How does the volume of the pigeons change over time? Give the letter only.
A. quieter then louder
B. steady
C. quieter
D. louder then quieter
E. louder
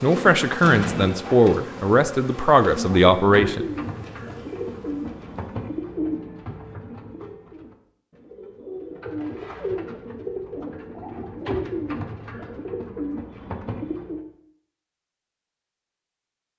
B.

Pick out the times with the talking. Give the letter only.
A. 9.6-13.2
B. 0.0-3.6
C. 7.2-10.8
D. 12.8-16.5
B.